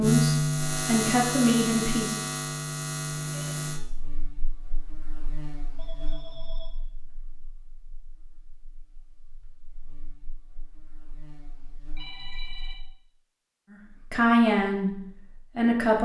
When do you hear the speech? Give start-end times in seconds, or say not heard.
0.0-2.2, 13.7-16.0.